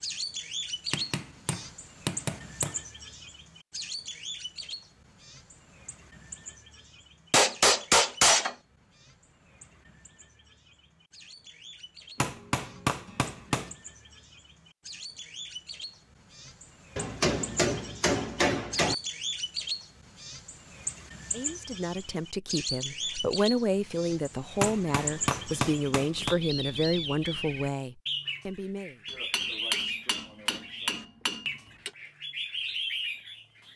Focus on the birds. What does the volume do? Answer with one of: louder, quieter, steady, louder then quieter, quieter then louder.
quieter then louder.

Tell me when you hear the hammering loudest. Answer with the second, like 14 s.
8 s.